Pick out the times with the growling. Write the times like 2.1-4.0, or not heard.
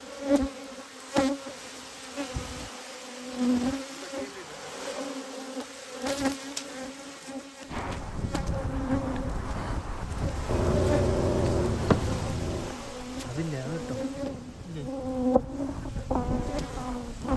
10.4-12.8.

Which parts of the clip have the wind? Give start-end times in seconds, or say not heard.
7.7-17.3.